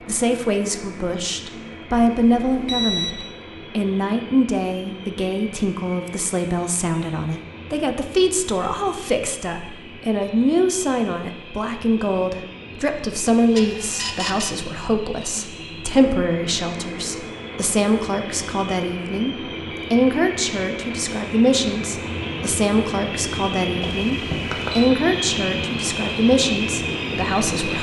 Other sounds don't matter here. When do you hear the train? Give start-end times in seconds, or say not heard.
0.0-27.7.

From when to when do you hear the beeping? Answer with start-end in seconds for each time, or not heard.
1.9-3.2, 13.6-14.5, 23.8-24.9.